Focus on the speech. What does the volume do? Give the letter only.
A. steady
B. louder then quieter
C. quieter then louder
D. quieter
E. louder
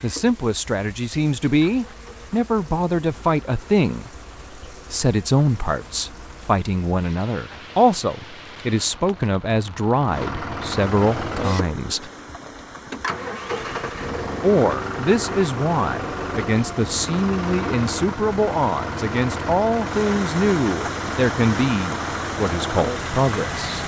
A.